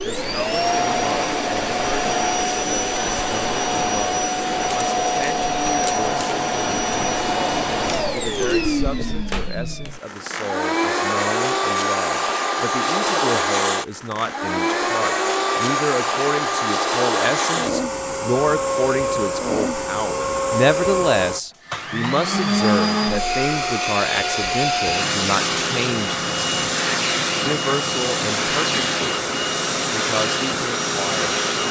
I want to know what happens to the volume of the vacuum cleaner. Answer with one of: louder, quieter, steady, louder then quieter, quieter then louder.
steady.